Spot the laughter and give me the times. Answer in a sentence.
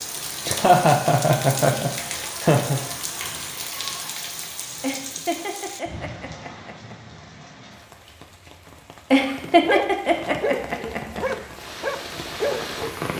The laughter can be heard from 0.5 to 2.8 s, from 4.8 to 7.0 s and from 9.1 to 11.2 s.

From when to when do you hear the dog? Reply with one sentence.
The dog can be heard from 9.2 to 13.1 s.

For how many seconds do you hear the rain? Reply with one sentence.
The rain can be heard for 13 seconds in total.